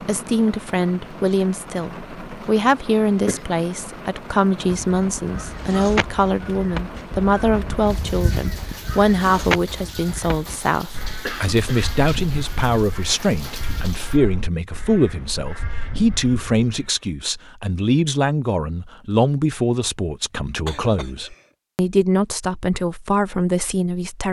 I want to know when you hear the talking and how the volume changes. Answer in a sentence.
You can hear the talking from 0.0 to 24.2 s, at a steady volume.